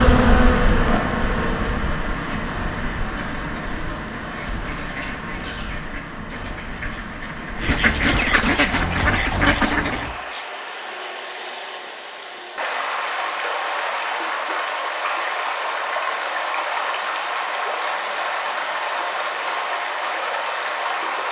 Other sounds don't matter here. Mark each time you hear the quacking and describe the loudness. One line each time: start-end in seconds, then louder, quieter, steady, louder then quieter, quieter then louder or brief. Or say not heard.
2.1-10.2 louder.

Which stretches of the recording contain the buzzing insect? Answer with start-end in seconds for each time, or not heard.
0.0-2.0.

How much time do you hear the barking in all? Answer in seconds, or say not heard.
not heard.